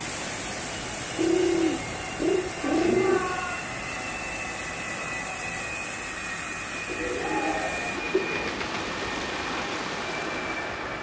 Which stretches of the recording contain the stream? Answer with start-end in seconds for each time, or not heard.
0.0-10.9.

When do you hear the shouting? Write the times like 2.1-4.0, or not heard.
2.5-3.6, 7.2-8.0.